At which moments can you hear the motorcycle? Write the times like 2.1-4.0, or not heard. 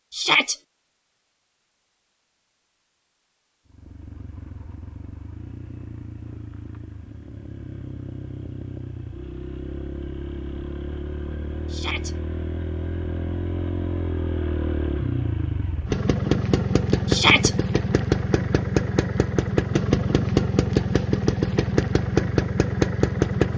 3.6-23.5.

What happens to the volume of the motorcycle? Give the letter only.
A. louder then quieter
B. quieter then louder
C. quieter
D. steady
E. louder
E.